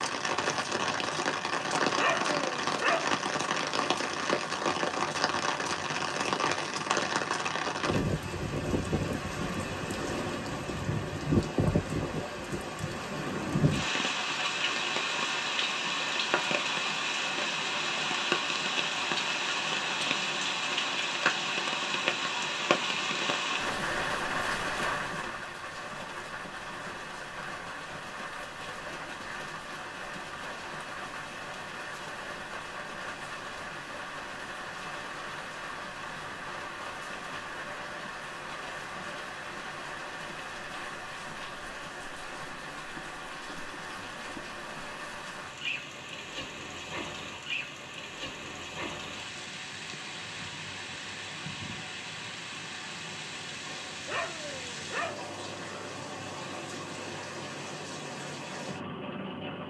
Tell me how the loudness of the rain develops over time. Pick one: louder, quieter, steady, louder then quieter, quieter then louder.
quieter.